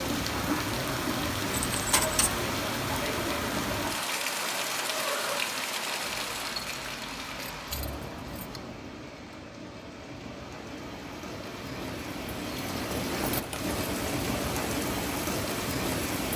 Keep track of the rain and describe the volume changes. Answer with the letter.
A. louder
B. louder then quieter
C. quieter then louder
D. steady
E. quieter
C.